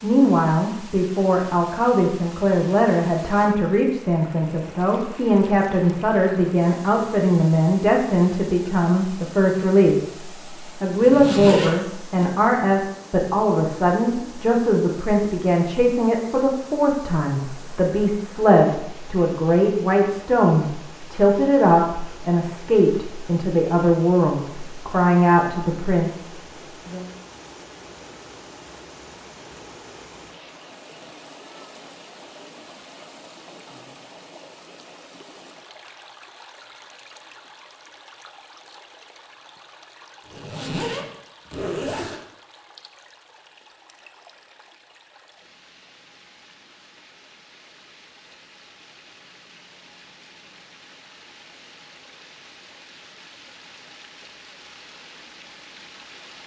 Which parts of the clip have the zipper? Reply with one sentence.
You can hear the zipper from 10.9 to 12.3 s and from 40.2 to 42.2 s.